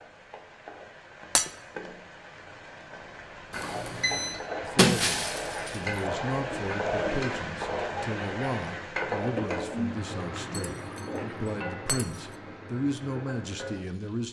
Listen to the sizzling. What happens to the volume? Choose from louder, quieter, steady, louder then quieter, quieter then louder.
louder then quieter.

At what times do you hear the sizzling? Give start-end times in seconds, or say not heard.
0.0-14.2.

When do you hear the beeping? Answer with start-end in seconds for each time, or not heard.
3.5-4.3.